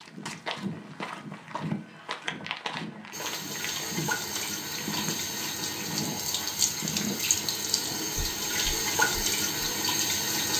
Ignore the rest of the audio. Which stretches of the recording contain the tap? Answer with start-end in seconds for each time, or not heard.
3.1-10.5.